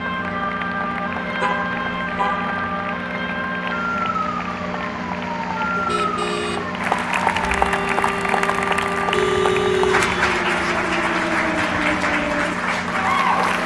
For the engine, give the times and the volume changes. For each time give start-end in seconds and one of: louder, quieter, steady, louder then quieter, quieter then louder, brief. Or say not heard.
0.0-13.6 steady.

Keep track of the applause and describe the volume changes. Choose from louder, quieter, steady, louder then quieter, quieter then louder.
louder.